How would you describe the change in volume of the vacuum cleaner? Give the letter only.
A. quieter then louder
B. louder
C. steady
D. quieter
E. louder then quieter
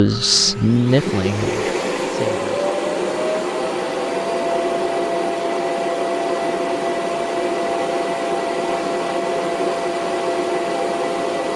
C.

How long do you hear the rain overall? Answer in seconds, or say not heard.
not heard.